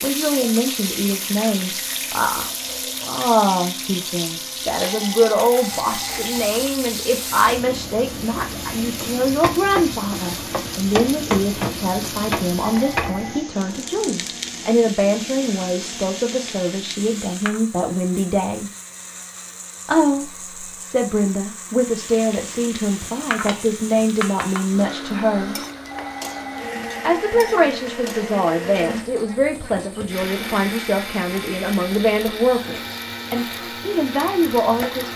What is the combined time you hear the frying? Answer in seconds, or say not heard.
31 s.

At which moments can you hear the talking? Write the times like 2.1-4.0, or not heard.
0.0-18.7, 19.9-25.6, 27.0-35.1.